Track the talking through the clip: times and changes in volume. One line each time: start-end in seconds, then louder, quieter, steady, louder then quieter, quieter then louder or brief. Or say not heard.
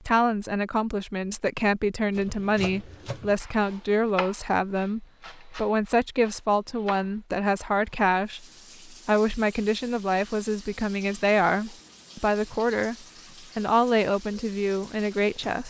0.1-15.6 steady.